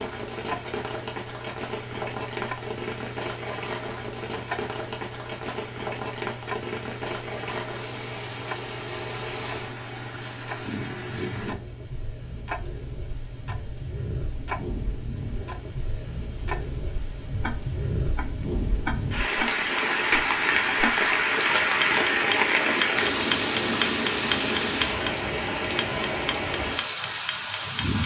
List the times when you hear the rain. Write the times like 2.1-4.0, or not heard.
0.0-28.0.